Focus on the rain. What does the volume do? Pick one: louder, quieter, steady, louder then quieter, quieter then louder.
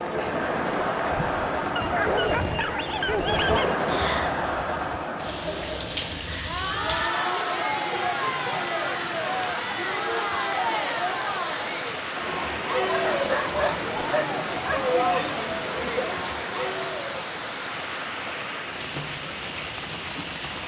steady.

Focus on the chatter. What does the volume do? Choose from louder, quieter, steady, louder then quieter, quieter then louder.
steady.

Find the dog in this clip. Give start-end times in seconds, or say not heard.
1.8-3.8, 12.8-14.8.